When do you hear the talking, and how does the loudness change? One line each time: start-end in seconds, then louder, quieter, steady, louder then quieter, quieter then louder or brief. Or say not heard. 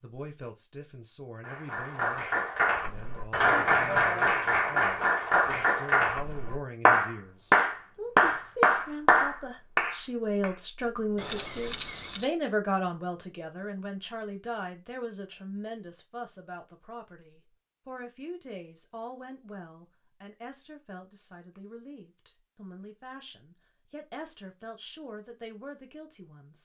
0.0-26.5 louder then quieter.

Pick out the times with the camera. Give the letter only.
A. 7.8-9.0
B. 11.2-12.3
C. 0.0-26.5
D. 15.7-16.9
B.